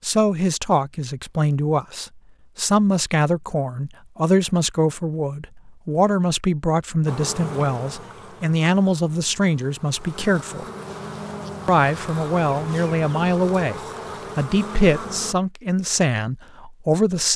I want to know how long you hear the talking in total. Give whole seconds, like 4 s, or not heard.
16 s.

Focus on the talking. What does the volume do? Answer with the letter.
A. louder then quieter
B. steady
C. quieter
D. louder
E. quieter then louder
B.